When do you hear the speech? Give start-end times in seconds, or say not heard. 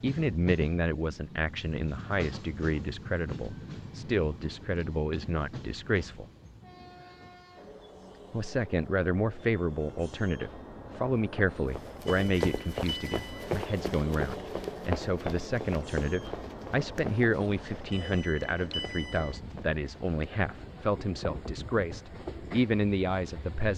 0.0-6.2, 8.3-23.7.